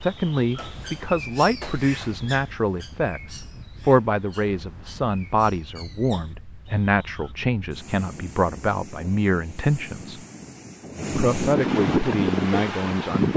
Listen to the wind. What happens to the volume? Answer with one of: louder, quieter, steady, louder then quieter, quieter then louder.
louder.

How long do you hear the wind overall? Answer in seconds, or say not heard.
13 s.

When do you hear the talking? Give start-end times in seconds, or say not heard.
0.0-10.2, 11.1-13.3.